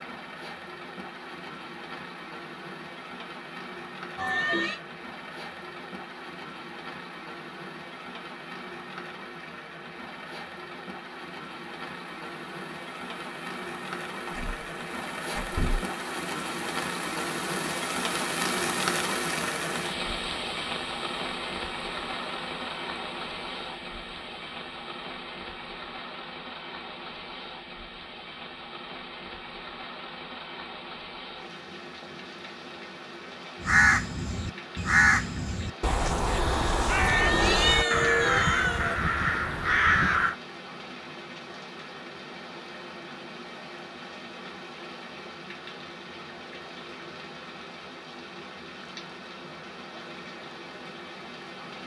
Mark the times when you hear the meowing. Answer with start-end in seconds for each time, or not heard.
4.2-4.8, 37.0-39.0.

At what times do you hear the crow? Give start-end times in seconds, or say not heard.
33.6-40.4.